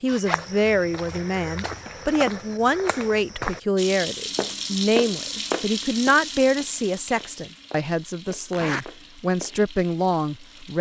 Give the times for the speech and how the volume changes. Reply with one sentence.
You can hear the speech from 0.0 to 10.7 s, at a steady volume.